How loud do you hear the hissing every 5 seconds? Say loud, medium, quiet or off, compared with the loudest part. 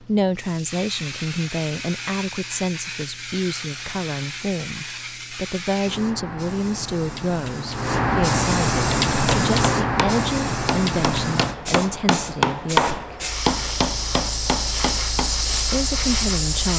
medium, loud, loud, loud.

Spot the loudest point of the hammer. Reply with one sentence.
The volume of the hammer peaks at 13 seconds.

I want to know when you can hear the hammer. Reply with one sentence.
The hammer can be heard from 8.9 to 15.6 s.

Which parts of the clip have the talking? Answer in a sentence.
You can hear the talking from 0.0 to 13.2 s and from 15.7 to 16.7 s.